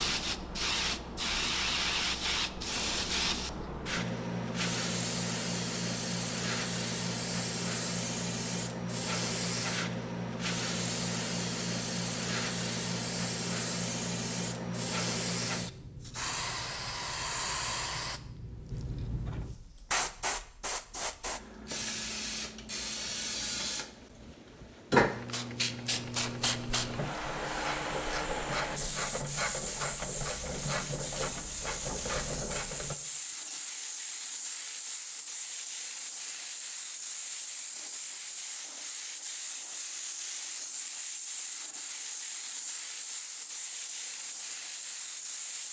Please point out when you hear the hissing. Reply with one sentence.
You can hear the hissing from 0.0 to 45.6 s.